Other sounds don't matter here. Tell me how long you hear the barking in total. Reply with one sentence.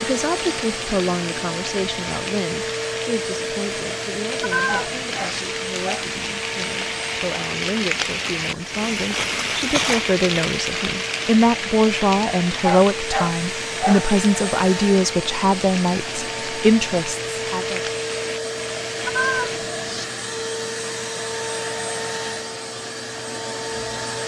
The barking can be heard for 3 seconds in total.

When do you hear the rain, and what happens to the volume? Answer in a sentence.
The rain can be heard from 0.0 to 19.6 s, getting louder then quieter.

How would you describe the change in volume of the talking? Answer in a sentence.
The volume of the talking goes down, then up.